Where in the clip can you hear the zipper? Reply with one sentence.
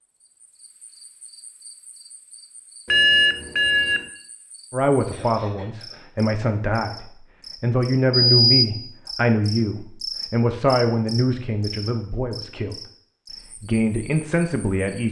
You can't hear the zipper here.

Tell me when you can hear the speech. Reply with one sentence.
You can hear the speech from 4.7 to 12.8 s and from 13.6 to 15.0 s.